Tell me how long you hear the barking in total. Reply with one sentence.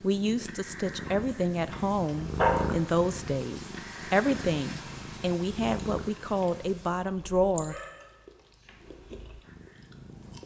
The barking can be heard for 3 seconds in total.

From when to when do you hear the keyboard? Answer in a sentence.
The keyboard can't be heard in this clip.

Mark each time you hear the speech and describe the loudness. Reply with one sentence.
You can hear the speech from 0.0 to 7.8 s, at a steady volume.